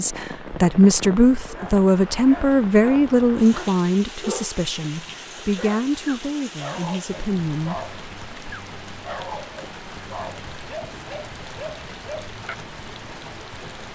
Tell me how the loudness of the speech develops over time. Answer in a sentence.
The volume of the speech goes down.